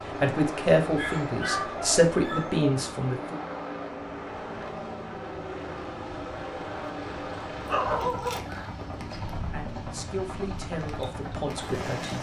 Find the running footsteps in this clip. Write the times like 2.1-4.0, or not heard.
not heard.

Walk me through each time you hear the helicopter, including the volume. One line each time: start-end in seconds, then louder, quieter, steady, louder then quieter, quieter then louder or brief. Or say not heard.
0.0-12.1 steady.